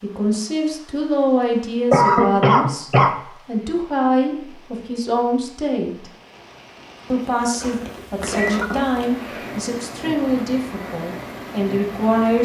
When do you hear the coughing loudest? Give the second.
2 s.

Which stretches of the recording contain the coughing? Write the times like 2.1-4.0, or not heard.
1.9-3.1, 7.6-9.6.